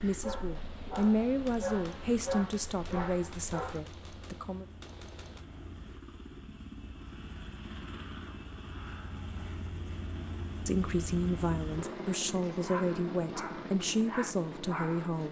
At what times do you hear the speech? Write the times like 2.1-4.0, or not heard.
0.0-4.7, 10.7-15.2.